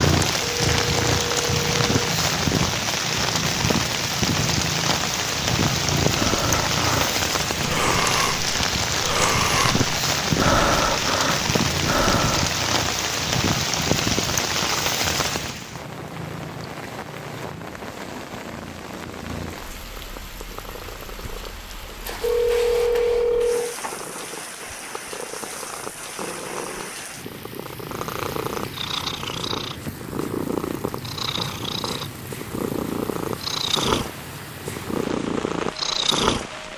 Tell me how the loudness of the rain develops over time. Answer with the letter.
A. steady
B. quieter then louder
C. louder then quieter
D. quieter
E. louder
D.